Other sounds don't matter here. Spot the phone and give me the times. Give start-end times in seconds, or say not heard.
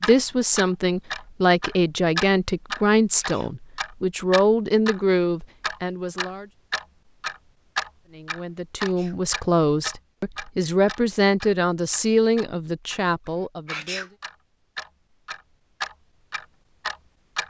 not heard.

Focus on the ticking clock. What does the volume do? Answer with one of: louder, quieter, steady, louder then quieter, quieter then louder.
quieter then louder.